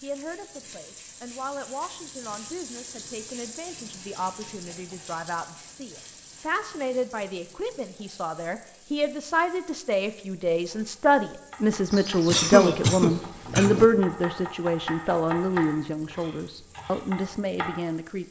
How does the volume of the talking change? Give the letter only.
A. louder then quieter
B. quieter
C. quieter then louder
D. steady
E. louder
A.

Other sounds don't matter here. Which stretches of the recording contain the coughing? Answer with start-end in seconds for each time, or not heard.
11.9-13.8.